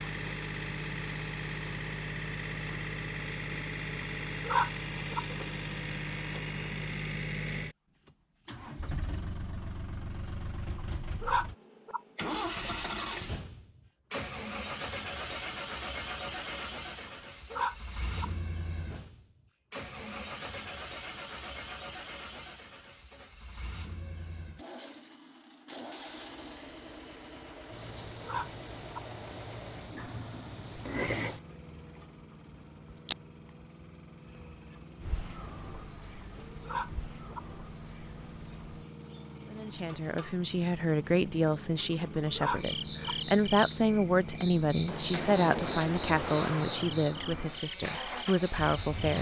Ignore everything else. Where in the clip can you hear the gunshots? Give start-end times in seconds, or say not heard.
44.9-46.9.